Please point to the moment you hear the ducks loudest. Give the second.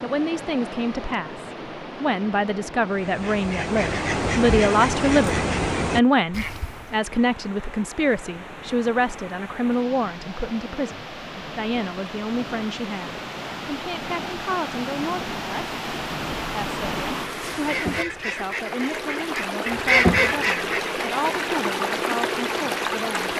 20 s.